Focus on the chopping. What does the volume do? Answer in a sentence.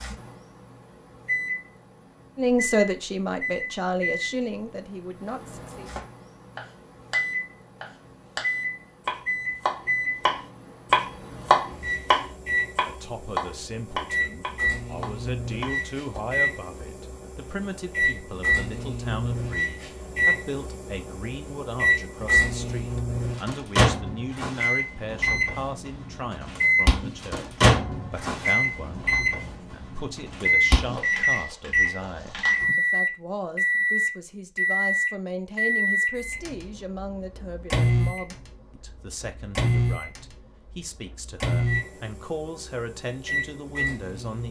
The loudness of the chopping goes up, then down.